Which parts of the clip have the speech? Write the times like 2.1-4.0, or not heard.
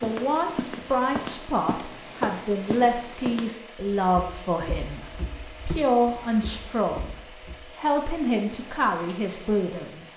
0.0-5.0, 5.7-10.1.